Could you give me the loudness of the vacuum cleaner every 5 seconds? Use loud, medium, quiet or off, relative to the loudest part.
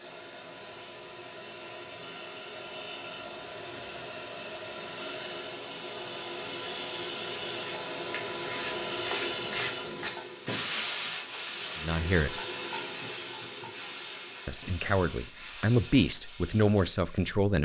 medium, loud, medium, off.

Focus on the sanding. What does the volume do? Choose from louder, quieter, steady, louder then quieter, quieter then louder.
quieter.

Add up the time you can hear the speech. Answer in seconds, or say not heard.
4 s.